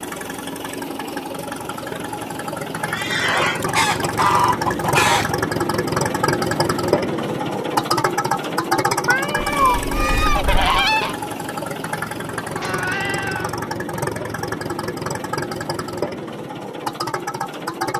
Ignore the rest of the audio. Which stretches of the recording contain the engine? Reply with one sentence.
The engine can be heard from 0.0 to 17.9 s.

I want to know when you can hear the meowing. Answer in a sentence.
You can hear the meowing from 2.8 to 3.6 s, from 9.1 to 9.8 s and from 12.6 to 13.6 s.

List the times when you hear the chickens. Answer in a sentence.
You can hear the chickens from 3.6 to 5.3 s and from 9.4 to 11.2 s.